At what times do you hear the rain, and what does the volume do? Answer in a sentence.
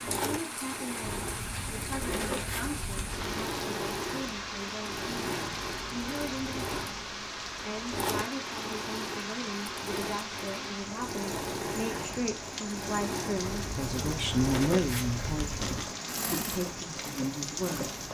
The rain can be heard from 0.0 to 18.0 s, at a steady volume.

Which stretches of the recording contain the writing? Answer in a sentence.
The writing can be heard from 1.0 to 3.5 s and from 13.4 to 15.9 s.